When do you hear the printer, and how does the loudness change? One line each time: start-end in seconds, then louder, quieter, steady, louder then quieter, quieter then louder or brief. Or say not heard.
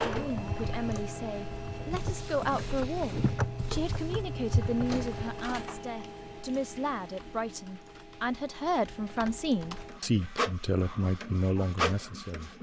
0.0-12.5 quieter then louder.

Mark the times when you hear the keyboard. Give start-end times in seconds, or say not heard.
0.0-5.5.